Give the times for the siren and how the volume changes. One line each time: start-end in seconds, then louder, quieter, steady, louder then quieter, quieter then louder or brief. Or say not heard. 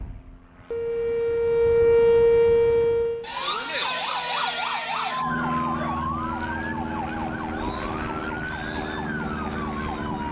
0.0-10.2 quieter.